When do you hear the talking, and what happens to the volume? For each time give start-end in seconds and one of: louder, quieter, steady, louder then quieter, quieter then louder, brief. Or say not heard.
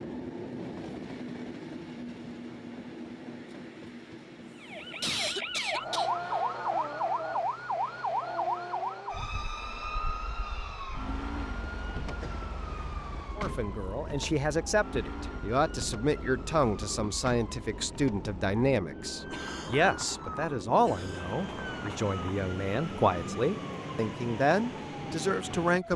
13.3-25.9 steady.